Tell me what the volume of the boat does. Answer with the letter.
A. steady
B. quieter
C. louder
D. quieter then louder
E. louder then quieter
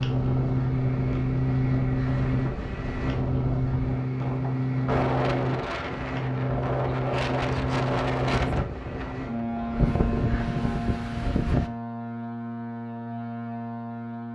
B.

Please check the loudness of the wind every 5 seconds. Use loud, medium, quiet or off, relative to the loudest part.
medium, loud, loud.